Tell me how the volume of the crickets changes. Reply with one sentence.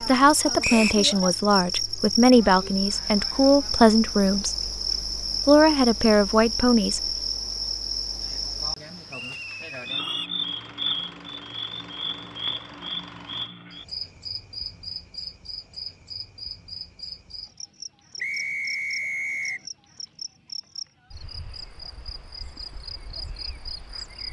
The volume of the crickets goes down.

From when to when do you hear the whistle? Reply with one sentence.
You can hear the whistle from 0.6 to 1.1 s, from 9.1 to 10.3 s and from 18.2 to 19.6 s.